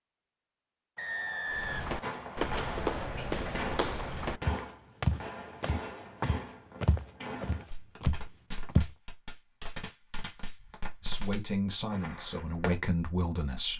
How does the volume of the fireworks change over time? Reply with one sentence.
The loudness of the fireworks goes down.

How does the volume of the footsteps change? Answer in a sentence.
The loudness of the footsteps stays about the same.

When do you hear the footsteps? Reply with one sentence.
The footsteps can be heard from 1.5 to 8.9 s.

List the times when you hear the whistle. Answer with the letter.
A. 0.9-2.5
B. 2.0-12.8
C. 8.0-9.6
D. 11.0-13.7
A.